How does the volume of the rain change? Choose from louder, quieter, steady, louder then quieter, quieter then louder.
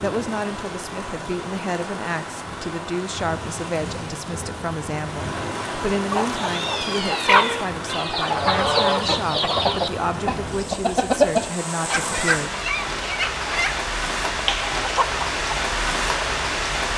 louder.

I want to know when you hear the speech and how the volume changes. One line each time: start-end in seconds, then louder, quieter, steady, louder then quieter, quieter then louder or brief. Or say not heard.
0.0-12.5 steady.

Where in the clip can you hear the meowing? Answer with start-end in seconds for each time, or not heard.
6.3-8.3.